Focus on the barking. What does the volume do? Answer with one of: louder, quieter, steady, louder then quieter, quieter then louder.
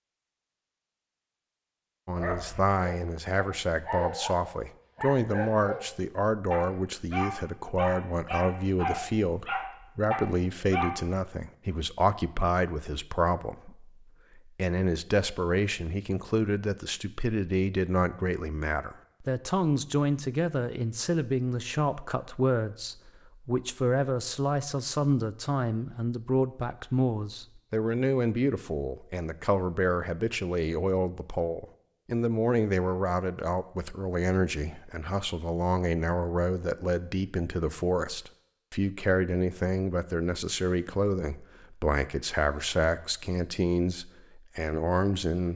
louder.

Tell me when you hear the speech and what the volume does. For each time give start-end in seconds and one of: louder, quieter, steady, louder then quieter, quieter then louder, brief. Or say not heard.
2.0-45.5 steady.